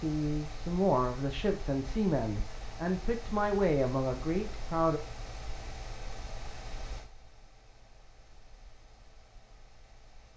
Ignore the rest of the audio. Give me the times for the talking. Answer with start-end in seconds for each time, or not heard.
0.0-5.0.